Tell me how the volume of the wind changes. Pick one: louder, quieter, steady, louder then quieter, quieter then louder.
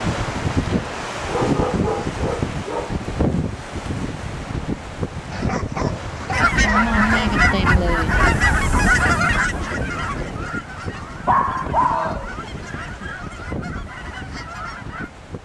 quieter.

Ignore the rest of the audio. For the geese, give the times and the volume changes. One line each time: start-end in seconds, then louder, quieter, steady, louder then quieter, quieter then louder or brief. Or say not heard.
6.3-15.1 quieter.